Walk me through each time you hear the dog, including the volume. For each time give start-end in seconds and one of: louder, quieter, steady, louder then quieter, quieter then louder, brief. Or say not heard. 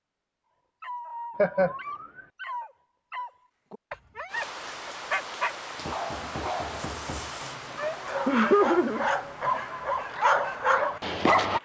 0.8-11.6 louder.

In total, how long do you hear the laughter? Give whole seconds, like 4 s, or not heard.
2 s.